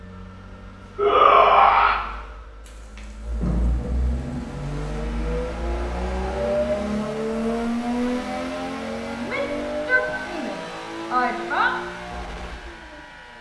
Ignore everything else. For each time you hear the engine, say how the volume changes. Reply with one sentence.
You can hear the engine from 0.0 to 13.3 s, getting louder then quieter.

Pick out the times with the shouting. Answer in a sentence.
The shouting can be heard from 0.9 to 2.0 s and from 9.2 to 11.8 s.